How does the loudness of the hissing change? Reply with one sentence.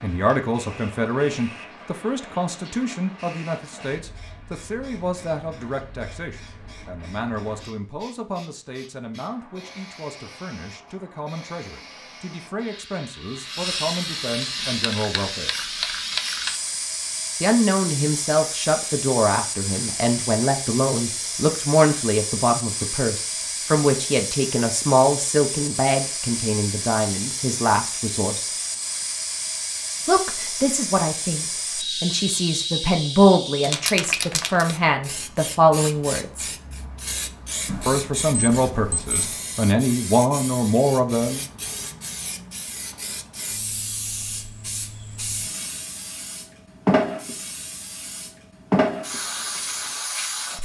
The volume of the hissing goes up.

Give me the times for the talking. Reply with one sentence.
The talking can be heard from 0.0 to 15.5 s, from 17.4 to 28.5 s, from 30.1 to 36.5 s and from 37.9 to 41.4 s.